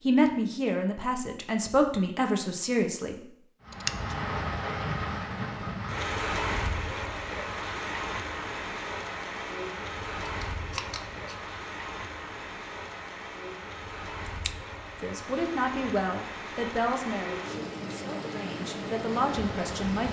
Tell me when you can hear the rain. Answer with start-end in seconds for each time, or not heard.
3.6-20.0.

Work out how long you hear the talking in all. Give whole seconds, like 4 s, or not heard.
8 s.